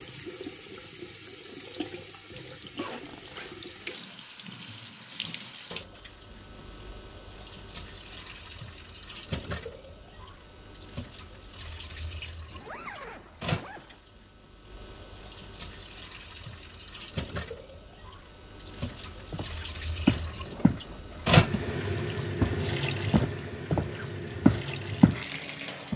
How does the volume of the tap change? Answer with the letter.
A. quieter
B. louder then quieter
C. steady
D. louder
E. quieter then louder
D.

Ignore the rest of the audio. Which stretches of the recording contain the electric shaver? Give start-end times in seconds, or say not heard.
not heard.